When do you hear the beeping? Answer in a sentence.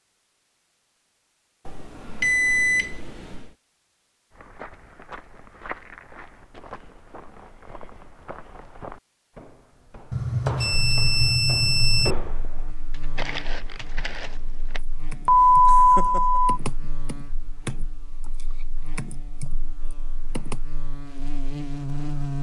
The beeping can be heard from 1.6 to 3.5 s, from 10.1 to 12.2 s and from 15.2 to 16.6 s.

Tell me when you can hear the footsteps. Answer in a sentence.
The footsteps can be heard from 4.3 to 14.8 s.